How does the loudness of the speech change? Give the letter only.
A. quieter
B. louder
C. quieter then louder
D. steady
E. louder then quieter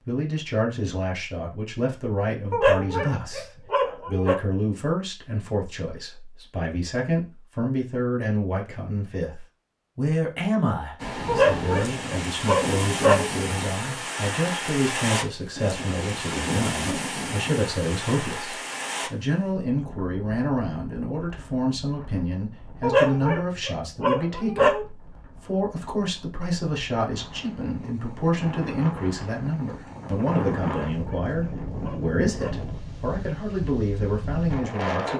D.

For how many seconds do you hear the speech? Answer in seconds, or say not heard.
35 s.